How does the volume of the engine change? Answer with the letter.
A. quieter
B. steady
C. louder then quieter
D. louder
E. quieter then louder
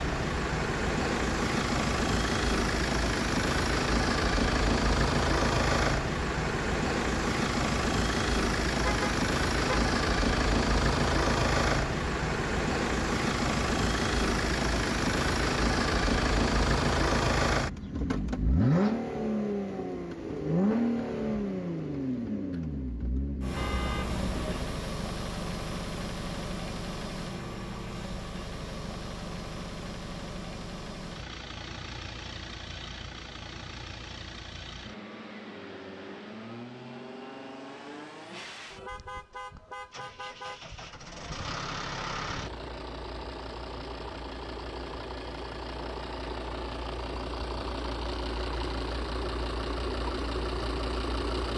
E.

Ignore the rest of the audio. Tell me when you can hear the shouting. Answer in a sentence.
The shouting can't be heard in this clip.